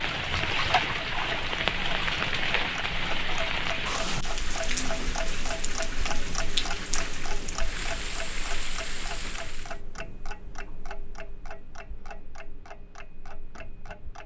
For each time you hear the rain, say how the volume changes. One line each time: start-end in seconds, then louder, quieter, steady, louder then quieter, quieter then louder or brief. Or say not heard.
0.0-9.8 quieter.